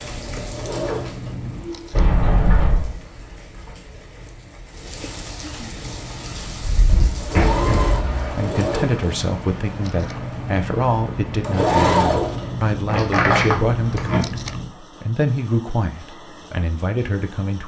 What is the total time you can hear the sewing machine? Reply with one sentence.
The sewing machine can be heard for 11 seconds in total.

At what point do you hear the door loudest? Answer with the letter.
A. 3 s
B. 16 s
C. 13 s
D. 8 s
C.